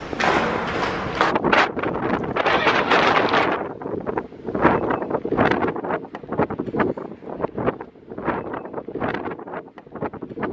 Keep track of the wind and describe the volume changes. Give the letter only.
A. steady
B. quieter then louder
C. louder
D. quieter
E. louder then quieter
D.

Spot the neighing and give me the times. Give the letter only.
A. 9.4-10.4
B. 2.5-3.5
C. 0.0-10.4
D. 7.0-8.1
B.